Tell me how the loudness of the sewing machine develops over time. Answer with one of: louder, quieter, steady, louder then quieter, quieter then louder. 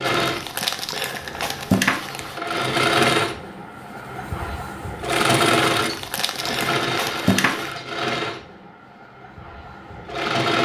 louder then quieter.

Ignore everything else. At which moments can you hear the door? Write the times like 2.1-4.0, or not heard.
not heard.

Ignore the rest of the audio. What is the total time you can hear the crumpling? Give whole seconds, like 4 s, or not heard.
4 s.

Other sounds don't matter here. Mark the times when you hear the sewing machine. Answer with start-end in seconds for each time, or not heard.
0.0-10.6.